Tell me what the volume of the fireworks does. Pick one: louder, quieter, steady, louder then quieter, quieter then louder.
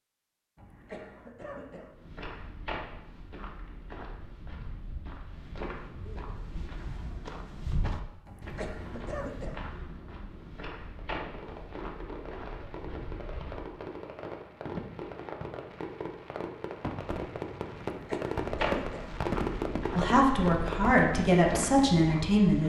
louder.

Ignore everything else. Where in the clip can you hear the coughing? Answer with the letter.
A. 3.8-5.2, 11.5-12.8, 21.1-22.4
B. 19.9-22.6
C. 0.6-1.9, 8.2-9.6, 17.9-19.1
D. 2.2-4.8
C.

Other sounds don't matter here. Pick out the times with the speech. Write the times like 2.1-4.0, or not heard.
19.9-22.6.